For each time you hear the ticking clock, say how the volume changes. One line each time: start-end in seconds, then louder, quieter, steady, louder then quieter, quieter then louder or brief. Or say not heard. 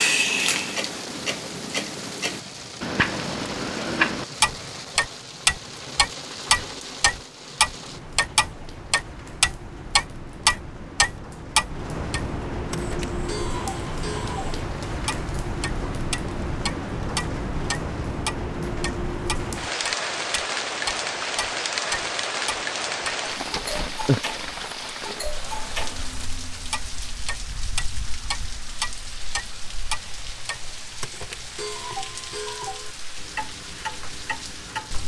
0.0-35.0 quieter.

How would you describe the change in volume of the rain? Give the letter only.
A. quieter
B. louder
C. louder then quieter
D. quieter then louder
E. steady
C.